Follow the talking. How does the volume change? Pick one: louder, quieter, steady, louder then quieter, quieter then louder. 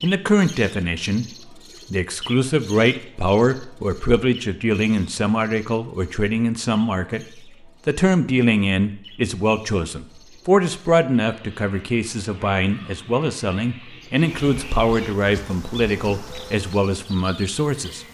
steady.